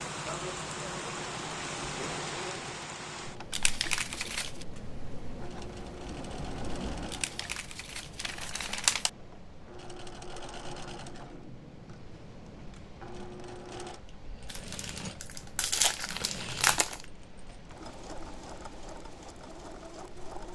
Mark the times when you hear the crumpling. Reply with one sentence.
You can hear the crumpling from 3.5 to 4.7 s, from 7.1 to 9.1 s and from 14.5 to 17.1 s.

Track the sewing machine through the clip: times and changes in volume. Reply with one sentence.
You can hear the sewing machine from 0.0 to 20.5 s, at a steady volume.